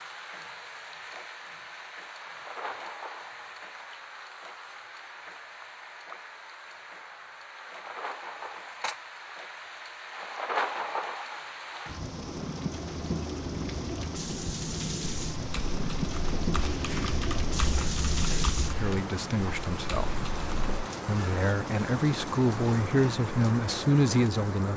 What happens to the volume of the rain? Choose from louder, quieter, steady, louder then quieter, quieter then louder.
louder.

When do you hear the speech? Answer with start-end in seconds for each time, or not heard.
18.8-20.2, 21.1-24.7.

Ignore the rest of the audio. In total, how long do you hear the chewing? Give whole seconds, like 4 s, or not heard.
not heard.